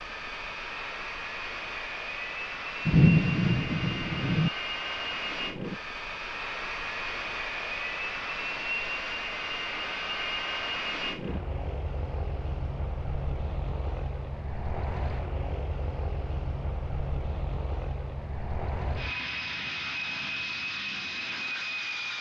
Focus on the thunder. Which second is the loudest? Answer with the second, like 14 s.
3 s.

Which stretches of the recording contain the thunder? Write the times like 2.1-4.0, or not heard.
2.9-4.5.